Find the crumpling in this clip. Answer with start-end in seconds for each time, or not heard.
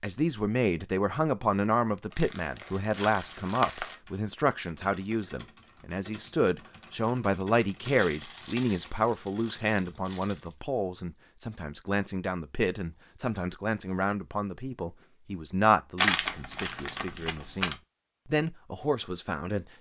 2.1-4.0, 7.8-10.5, 15.9-17.8.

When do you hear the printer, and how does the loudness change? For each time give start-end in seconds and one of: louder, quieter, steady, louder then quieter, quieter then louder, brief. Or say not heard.
not heard.